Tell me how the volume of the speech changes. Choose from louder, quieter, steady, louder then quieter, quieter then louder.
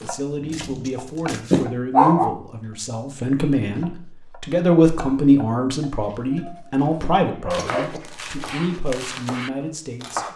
louder then quieter.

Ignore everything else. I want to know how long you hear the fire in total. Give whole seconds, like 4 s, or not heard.
not heard.